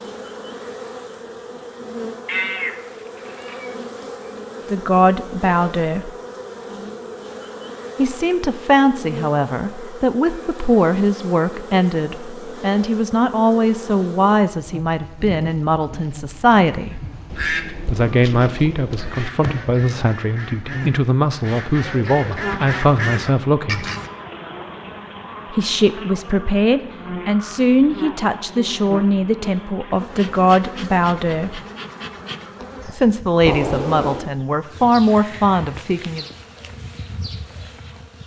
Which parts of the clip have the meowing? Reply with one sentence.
You can hear the meowing from 2.2 to 3.8 s, from 17.2 to 19.3 s and from 33.5 to 34.3 s.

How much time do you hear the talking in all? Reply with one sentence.
You can hear the talking for 26 seconds altogether.